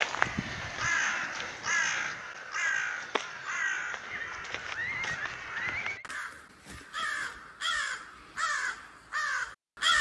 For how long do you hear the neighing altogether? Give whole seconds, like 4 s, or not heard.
2 s.